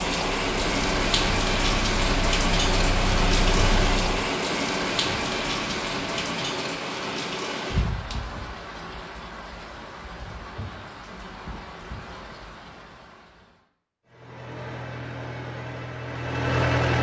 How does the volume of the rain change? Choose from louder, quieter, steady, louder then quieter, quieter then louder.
quieter.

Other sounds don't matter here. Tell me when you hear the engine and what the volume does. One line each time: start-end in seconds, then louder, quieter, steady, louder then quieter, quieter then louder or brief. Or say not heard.
0.2-4.3 louder
14.1-16.9 brief.